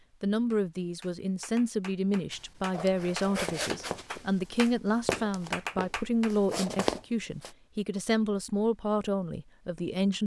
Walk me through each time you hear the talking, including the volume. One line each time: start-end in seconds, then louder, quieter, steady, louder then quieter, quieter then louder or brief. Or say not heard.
0.2-10.2 steady.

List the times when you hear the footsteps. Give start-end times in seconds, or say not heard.
2.3-7.5.